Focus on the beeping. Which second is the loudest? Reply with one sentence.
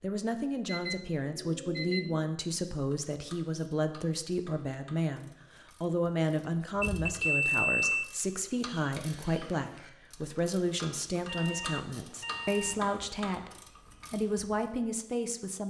The volume of the beeping peaks at 8 seconds.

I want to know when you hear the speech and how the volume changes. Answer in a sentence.
You can hear the speech from 0.0 to 15.6 s, at a steady volume.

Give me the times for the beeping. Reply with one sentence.
You can hear the beeping from 0.7 to 2.3 s, from 6.8 to 8.1 s and from 11.2 to 12.8 s.